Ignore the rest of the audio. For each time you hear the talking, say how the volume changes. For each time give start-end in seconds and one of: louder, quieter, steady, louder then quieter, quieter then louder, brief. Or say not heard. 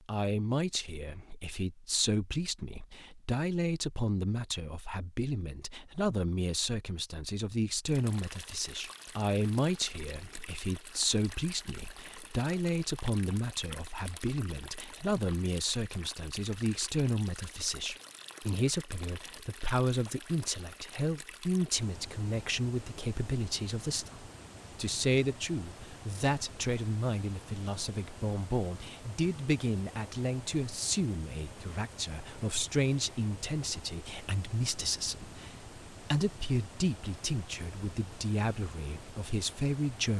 0.1-40.1 steady.